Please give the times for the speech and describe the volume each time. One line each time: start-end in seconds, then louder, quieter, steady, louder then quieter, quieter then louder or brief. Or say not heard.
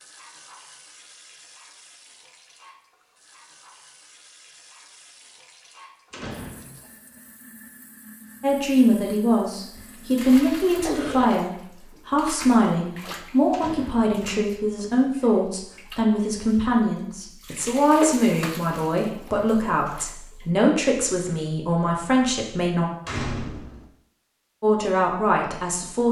8.4-22.9 steady
24.6-26.0 brief.